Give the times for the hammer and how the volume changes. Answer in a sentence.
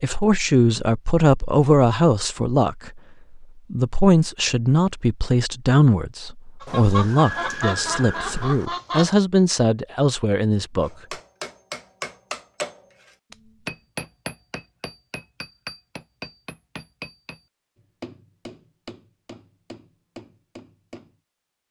You can hear the hammer from 10.8 to 21.1 s, getting quieter.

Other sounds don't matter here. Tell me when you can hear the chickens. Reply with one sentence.
You can hear the chickens from 6.6 to 9.2 s.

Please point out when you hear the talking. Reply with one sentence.
You can hear the talking from 0.0 to 10.9 s.